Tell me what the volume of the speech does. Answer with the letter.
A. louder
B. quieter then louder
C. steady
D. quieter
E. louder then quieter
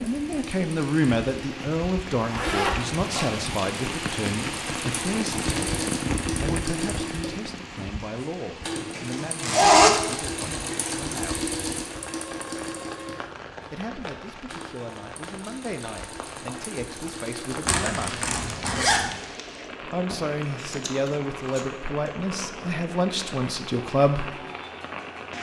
B.